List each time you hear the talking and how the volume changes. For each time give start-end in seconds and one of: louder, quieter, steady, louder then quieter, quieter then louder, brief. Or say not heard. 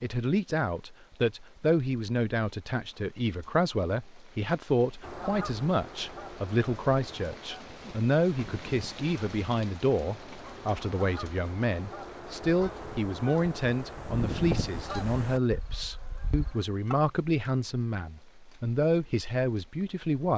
0.0-20.3 steady.